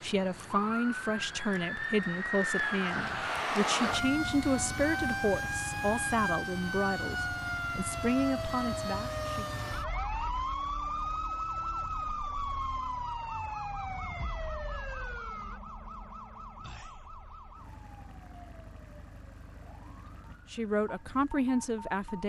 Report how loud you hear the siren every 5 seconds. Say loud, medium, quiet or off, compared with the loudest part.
loud, loud, loud, quiet, quiet.